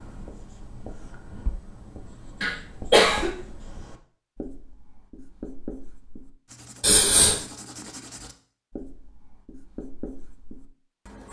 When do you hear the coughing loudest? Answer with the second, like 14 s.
3 s.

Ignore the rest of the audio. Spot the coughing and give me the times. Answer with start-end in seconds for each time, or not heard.
2.4-3.3, 6.8-7.4.